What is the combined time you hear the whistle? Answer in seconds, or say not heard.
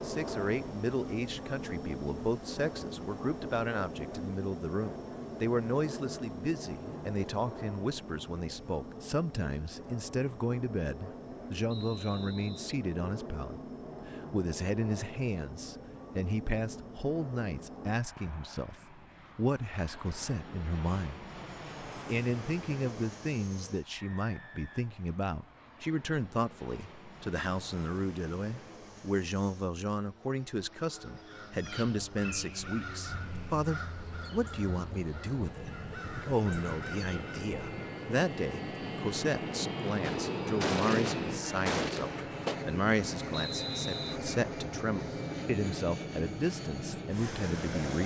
4 s.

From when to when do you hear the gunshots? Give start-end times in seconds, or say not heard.
40.0-42.6.